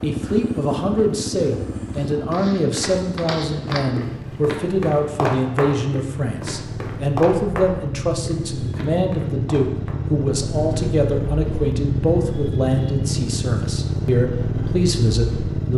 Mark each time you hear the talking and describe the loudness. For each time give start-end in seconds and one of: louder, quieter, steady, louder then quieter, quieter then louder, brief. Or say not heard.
0.0-15.7 steady.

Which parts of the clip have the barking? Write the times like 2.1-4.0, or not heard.
not heard.